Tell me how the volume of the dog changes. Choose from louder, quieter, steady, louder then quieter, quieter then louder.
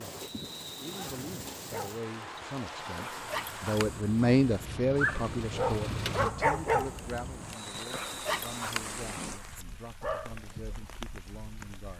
louder then quieter.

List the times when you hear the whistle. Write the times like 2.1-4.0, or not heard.
0.2-1.1, 7.5-8.7.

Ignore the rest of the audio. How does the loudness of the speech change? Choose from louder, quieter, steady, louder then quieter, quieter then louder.
louder then quieter.